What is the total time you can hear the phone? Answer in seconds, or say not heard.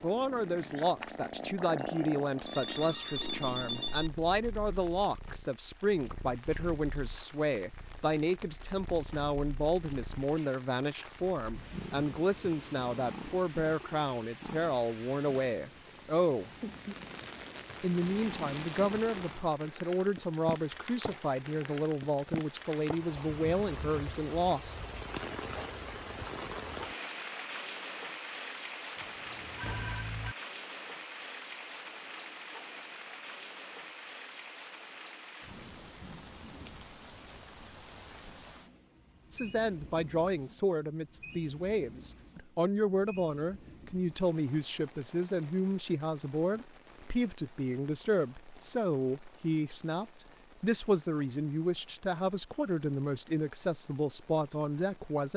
3 s.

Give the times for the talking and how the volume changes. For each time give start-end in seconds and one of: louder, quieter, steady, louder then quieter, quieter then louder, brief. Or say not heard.
0.0-16.5 steady
17.8-24.8 steady
39.3-55.3 steady.